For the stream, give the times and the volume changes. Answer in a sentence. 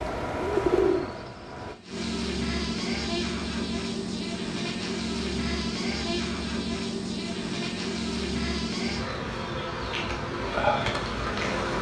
You can't hear the stream here.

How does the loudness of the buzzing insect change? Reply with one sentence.
The volume of the buzzing insect stays about the same.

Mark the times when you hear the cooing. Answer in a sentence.
The cooing can be heard from 0.0 to 1.8 s.